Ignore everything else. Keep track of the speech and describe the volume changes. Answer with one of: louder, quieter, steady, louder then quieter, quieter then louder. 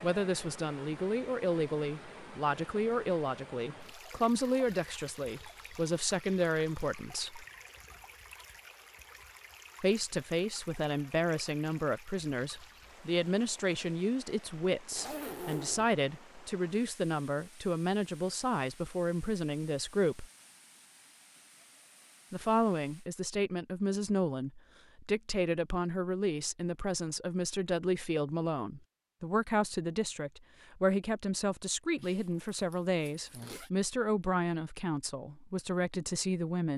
steady.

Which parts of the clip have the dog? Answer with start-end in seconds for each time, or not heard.
not heard.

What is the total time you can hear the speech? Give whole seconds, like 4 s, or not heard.
32 s.